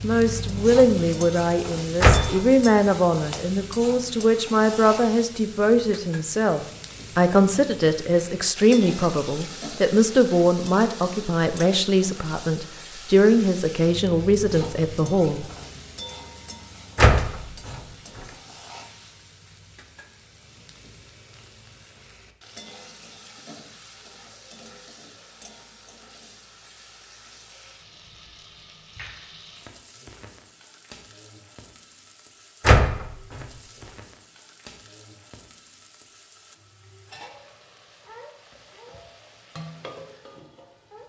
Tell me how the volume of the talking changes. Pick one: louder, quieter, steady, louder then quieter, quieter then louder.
steady.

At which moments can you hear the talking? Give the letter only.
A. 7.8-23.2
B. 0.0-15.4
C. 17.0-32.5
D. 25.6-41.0
B.